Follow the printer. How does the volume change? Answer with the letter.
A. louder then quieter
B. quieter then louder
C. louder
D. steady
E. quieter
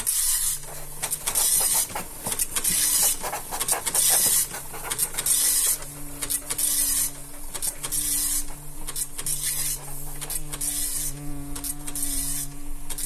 E.